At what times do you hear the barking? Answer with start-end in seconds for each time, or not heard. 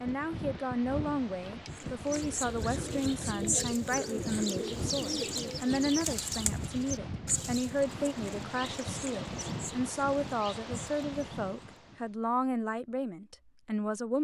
not heard.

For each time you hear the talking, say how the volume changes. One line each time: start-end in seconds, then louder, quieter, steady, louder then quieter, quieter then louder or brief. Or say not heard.
0.0-14.1 steady.